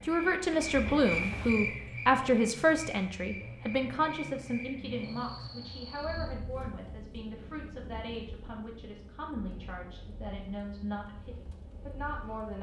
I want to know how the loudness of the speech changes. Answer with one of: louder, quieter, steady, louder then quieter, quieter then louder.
quieter.